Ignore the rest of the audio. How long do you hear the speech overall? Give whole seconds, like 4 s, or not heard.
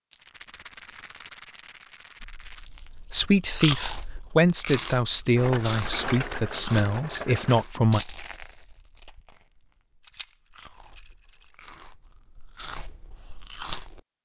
6 s.